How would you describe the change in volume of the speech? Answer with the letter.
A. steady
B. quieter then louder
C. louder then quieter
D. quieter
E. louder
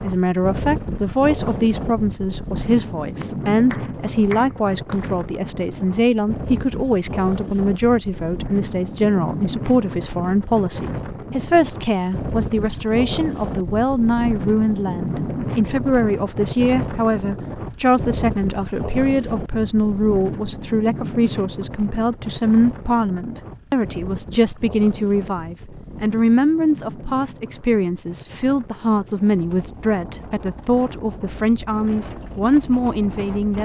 A.